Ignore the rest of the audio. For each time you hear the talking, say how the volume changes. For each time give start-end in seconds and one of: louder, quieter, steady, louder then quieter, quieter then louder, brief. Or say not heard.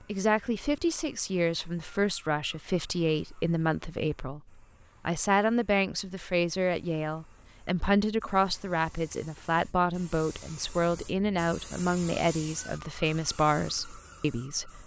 0.1-4.4 steady
5.0-14.8 steady.